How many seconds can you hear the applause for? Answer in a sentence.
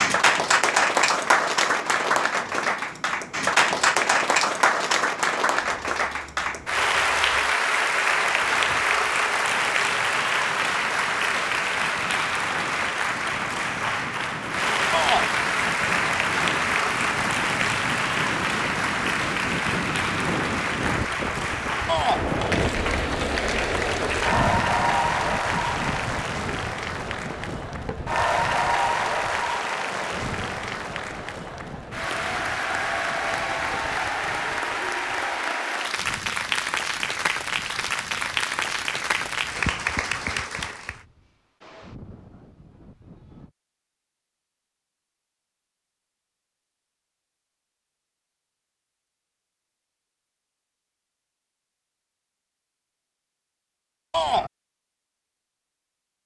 You can hear the applause for 41 seconds altogether.